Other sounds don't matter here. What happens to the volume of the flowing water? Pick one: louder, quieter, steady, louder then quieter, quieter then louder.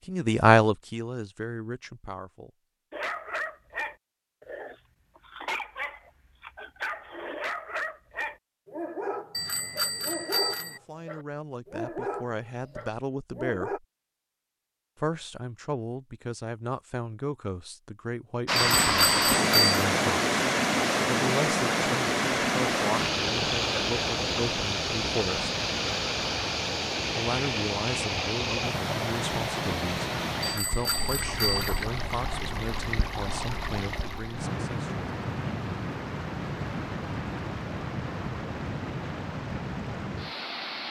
quieter.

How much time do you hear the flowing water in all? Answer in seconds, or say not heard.
22 s.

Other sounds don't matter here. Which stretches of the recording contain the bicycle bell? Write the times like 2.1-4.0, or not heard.
9.3-10.8, 18.8-19.8, 30.4-31.9.